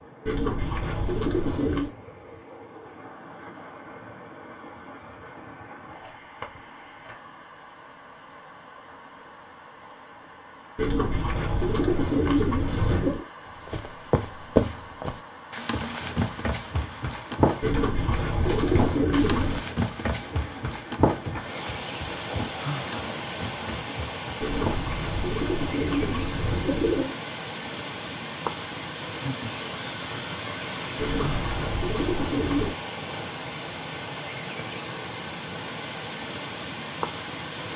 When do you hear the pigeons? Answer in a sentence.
You can hear the pigeons from 0.2 to 1.9 s, from 10.8 to 13.2 s, from 17.6 to 19.6 s, from 24.4 to 27.1 s and from 30.9 to 32.8 s.